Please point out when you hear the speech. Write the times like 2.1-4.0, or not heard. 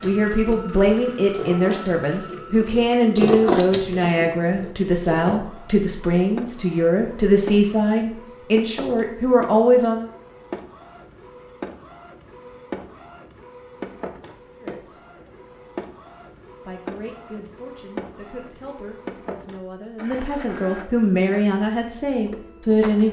0.0-10.1, 14.6-15.1, 16.6-23.0.